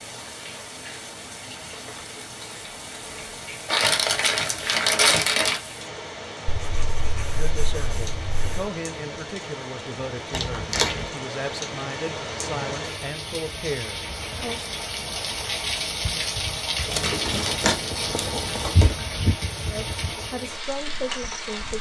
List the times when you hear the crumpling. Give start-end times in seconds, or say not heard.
3.6-5.6, 10.3-11.1, 16.9-18.9.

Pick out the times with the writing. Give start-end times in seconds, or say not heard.
6.5-8.7, 16.9-18.8.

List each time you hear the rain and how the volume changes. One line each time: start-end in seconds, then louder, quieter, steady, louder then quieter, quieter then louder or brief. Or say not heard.
0.0-21.7 louder.